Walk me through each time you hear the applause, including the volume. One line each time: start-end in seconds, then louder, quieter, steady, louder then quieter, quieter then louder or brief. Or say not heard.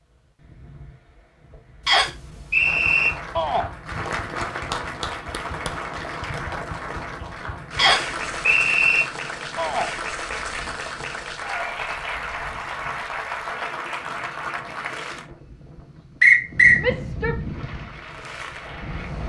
2.5-15.2 steady
17.4-19.2 brief.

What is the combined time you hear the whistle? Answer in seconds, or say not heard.
3 s.